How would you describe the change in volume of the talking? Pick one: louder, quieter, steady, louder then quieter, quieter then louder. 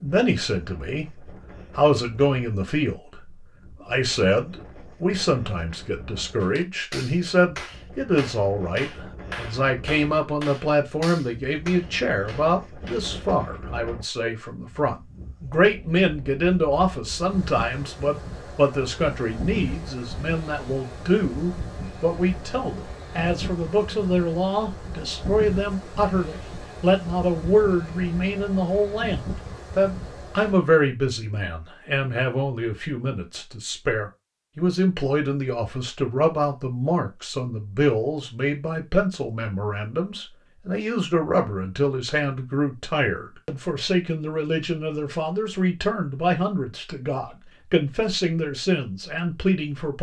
steady.